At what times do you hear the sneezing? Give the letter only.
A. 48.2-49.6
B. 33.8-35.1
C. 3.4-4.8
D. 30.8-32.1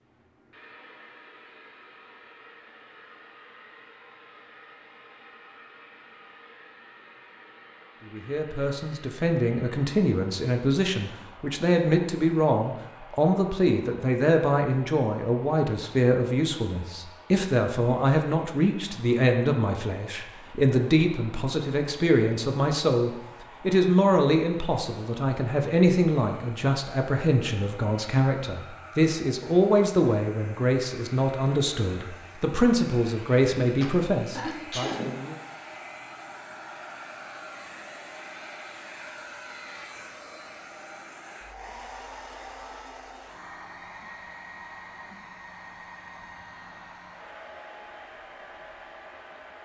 B.